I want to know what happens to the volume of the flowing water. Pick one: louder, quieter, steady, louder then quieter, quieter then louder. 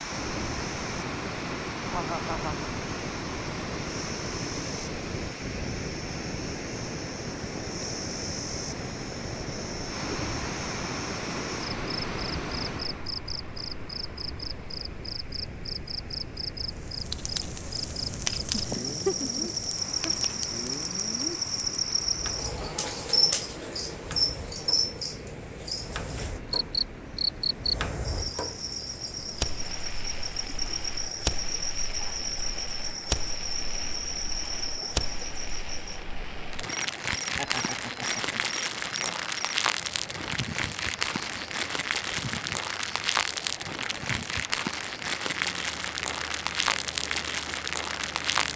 quieter.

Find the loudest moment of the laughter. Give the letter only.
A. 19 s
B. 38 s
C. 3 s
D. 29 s
A.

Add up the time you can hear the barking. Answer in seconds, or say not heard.
not heard.